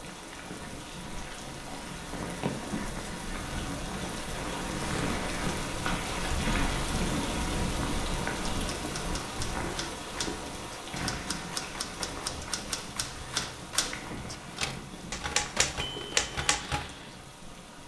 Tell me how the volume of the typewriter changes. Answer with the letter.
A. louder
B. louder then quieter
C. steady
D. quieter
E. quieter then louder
A.